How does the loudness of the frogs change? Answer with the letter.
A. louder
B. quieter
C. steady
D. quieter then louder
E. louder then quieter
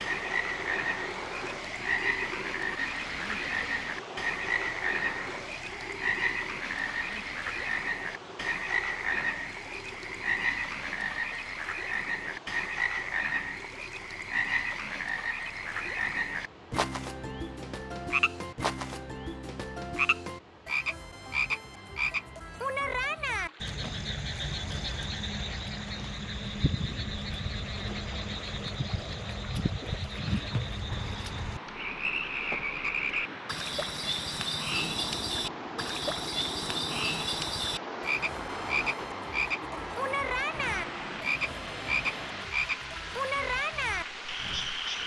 C.